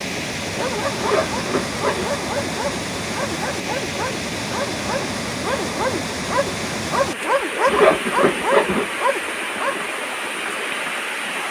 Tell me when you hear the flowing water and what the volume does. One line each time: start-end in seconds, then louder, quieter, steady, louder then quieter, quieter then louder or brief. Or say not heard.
0.0-11.4 steady.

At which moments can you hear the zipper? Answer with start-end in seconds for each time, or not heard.
0.9-2.0, 7.7-8.8.